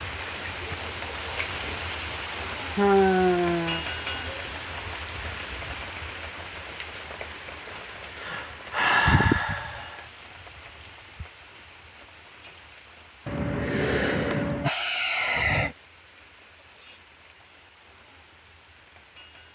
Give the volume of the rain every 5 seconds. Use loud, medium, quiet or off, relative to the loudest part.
loud, medium, quiet, quiet.